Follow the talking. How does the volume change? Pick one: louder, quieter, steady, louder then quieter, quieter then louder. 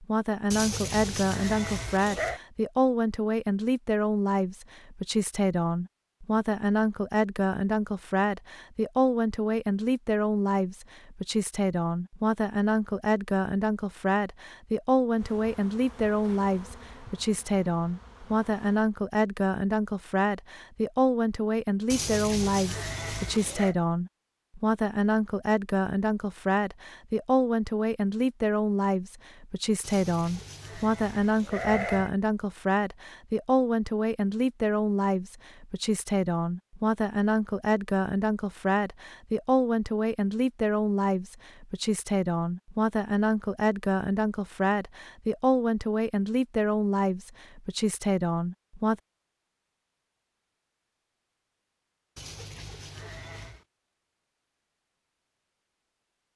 steady.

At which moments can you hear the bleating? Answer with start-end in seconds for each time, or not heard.
0.5-2.4, 21.9-23.8, 29.8-32.1, 52.1-53.6.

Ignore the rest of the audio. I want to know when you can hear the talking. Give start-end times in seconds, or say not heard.
0.0-49.0.